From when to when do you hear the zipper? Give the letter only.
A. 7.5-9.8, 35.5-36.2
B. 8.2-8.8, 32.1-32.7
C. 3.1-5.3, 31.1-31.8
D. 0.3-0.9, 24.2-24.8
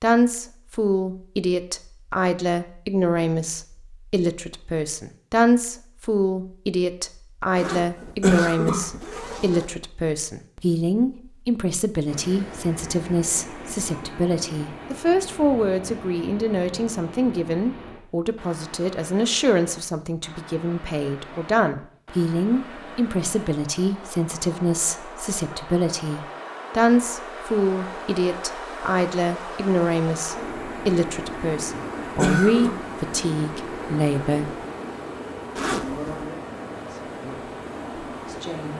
A.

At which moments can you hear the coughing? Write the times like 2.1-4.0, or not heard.
8.2-8.8, 32.1-32.7.